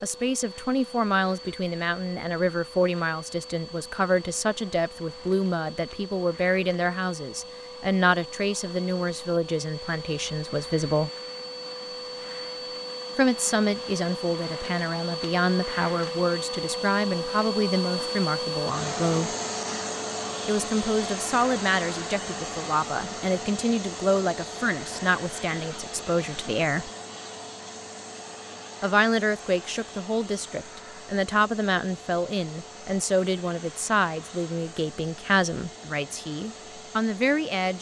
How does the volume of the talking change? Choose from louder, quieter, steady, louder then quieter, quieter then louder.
steady.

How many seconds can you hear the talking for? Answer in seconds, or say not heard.
33 s.